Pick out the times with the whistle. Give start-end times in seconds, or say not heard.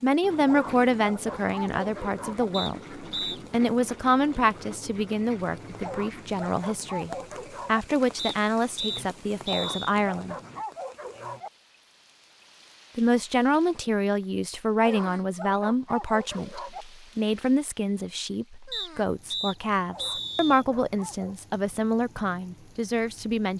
2.5-3.4, 8.2-9.9, 18.7-20.6.